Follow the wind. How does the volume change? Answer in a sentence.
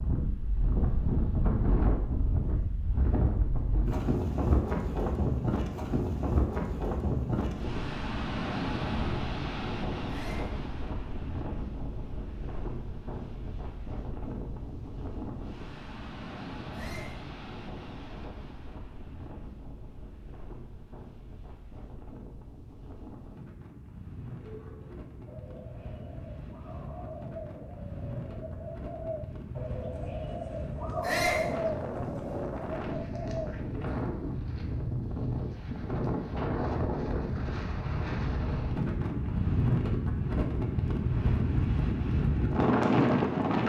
The volume of the wind goes down, then up.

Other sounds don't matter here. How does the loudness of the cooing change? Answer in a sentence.
The loudness of the cooing goes up.